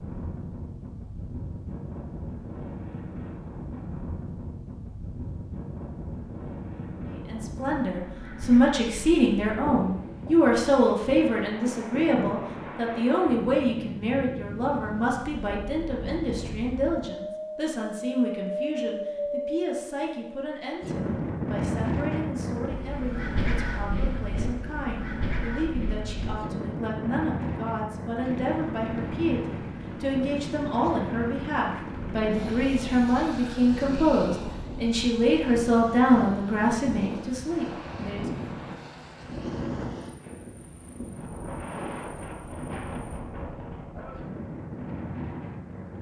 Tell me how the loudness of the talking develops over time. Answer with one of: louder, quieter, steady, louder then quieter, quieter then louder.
quieter then louder.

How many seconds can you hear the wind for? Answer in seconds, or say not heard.
46 s.